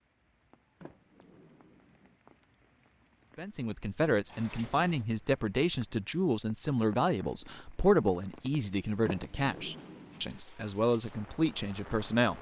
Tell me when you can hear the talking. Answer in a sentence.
You can hear the talking from 3.4 to 12.3 s.